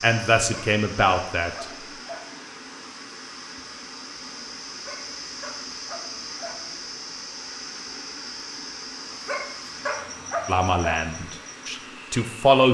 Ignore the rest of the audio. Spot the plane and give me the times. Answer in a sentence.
You can't hear the plane here.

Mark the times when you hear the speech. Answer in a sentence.
You can hear the speech from 0.0 to 1.6 s and from 10.4 to 12.7 s.